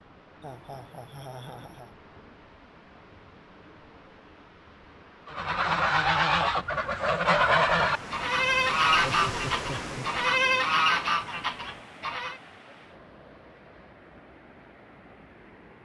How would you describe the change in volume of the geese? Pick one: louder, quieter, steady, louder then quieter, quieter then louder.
steady.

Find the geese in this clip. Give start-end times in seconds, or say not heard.
5.2-12.4.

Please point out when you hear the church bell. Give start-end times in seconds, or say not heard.
not heard.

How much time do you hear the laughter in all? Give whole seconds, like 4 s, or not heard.
3 s.